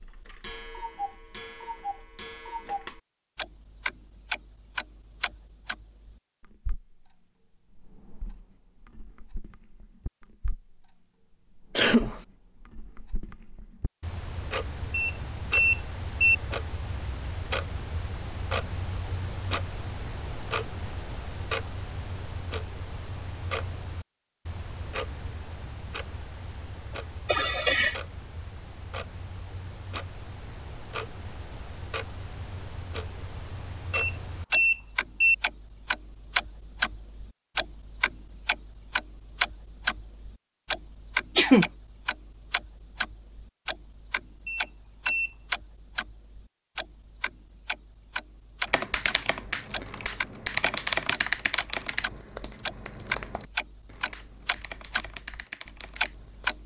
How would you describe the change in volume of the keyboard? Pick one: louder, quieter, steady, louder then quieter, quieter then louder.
louder then quieter.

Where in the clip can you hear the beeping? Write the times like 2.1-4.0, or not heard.
14.9-16.4, 33.9-35.4, 44.5-45.4.